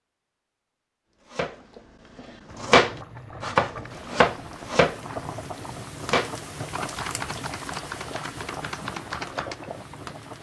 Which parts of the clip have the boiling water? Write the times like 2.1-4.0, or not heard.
2.5-10.3.